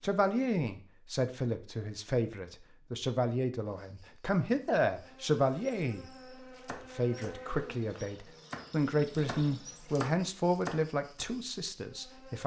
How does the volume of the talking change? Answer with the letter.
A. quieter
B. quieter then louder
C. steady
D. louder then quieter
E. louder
C.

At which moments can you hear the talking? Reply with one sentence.
You can hear the talking from 0.0 to 6.0 s and from 6.7 to 12.4 s.